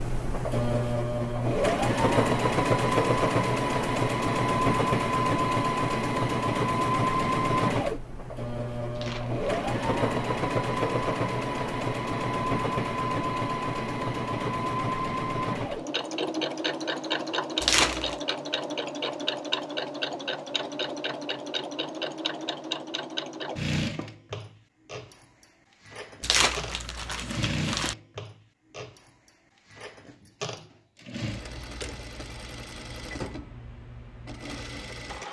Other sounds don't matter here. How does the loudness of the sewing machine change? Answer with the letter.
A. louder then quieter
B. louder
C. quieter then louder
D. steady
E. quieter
E.